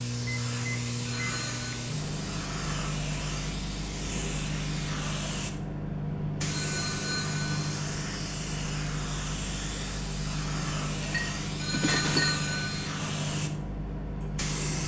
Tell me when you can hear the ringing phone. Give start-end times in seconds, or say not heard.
1.1-1.8, 6.5-7.8, 11.6-12.9.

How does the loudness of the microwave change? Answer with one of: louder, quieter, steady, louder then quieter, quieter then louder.
steady.